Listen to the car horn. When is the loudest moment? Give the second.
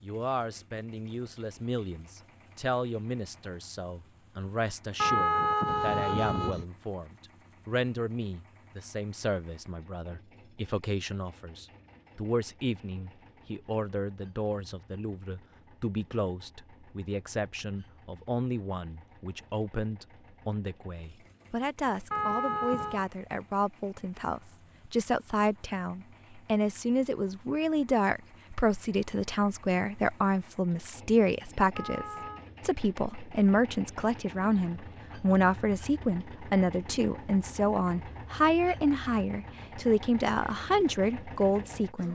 5 s.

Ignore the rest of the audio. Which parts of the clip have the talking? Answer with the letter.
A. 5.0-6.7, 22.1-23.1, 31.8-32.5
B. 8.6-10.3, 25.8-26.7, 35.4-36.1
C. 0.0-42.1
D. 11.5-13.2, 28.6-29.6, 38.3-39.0
C.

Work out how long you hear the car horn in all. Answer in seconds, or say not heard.
3 s.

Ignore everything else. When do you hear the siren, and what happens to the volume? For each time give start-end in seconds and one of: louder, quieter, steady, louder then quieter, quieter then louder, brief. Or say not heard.
not heard.